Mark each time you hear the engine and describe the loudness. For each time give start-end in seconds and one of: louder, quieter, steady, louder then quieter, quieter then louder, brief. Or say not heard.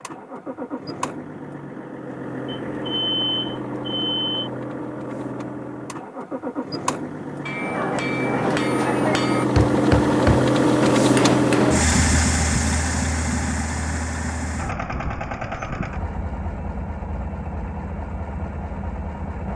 0.0-19.5 louder then quieter.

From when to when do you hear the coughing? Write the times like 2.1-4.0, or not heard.
not heard.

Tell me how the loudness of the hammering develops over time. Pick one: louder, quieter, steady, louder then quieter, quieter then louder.
steady.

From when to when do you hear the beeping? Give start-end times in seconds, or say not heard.
2.5-4.5.